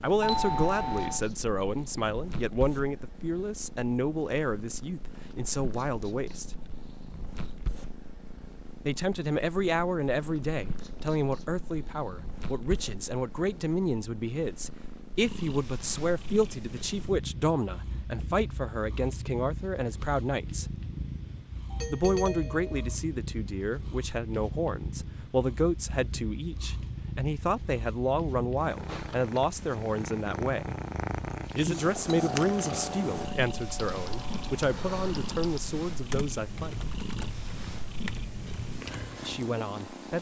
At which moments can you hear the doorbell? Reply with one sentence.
You can hear the doorbell from 0.2 to 1.2 s, from 21.7 to 22.9 s and from 32.3 to 34.5 s.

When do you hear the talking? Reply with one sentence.
The talking can be heard from 0.0 to 6.5 s, from 8.8 to 20.6 s, from 21.9 to 30.8 s, from 31.6 to 36.9 s and from 39.2 to 40.1 s.